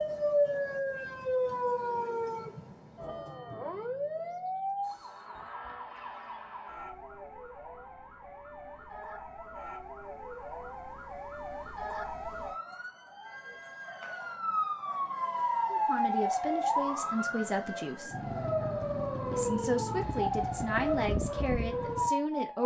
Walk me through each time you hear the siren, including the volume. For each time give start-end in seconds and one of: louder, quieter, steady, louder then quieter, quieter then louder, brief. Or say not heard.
0.0-22.6 quieter then louder.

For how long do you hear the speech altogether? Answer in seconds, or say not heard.
6 s.